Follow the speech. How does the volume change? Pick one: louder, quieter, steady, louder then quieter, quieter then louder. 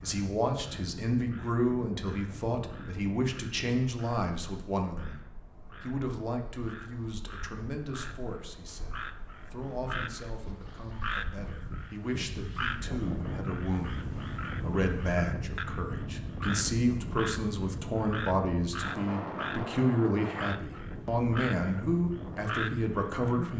quieter then louder.